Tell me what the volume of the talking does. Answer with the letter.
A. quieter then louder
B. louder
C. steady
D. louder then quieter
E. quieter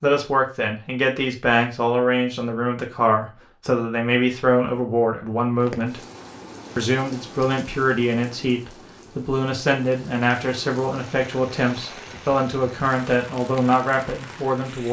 C.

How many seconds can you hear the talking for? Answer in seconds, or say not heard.
14 s.